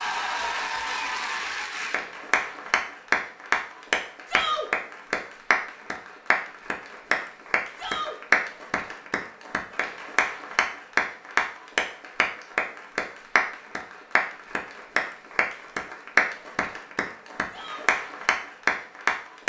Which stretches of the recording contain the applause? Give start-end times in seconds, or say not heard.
0.0-19.4.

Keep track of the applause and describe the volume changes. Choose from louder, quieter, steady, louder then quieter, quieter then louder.
steady.